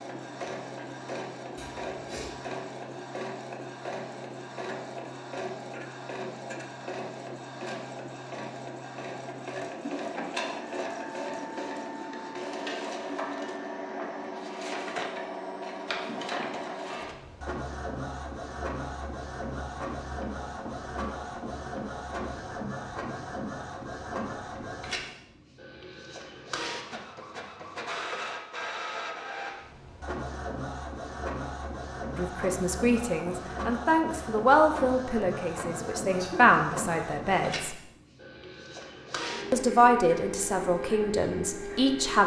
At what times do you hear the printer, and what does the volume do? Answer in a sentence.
You can hear the printer from 0.0 to 42.2 s, at a steady volume.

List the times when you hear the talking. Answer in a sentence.
You can hear the talking from 32.1 to 37.8 s and from 39.5 to 42.2 s.